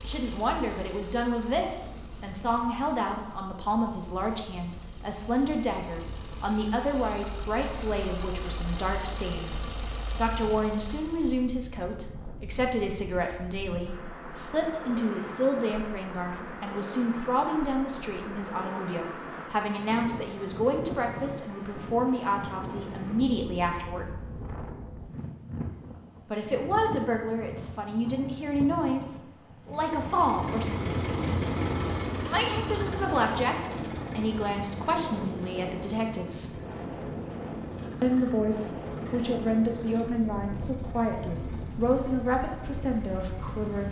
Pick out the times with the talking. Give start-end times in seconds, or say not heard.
0.1-24.1, 26.3-30.9, 32.2-36.6, 38.0-43.8.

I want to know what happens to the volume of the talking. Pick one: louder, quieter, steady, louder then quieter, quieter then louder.
steady.